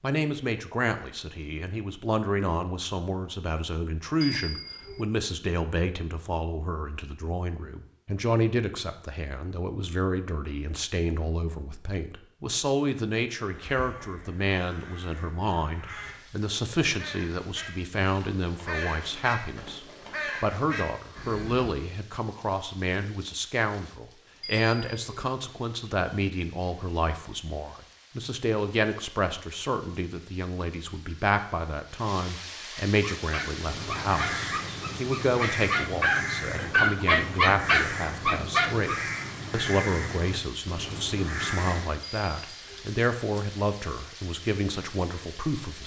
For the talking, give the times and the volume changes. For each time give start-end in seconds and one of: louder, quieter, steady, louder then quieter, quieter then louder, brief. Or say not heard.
0.0-45.8 steady.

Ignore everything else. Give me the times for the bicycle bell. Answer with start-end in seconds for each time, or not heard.
4.2-5.0, 24.4-25.2, 42.0-42.9.